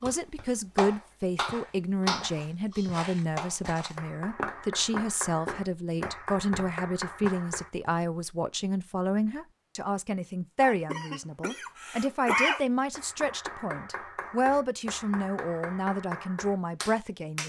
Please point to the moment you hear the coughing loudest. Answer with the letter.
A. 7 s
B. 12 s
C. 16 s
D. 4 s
B.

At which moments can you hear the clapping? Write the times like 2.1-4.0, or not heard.
0.0-7.7, 12.9-17.4.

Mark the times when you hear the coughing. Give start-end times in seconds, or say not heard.
10.6-12.6.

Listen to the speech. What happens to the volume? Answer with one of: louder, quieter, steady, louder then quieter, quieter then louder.
steady.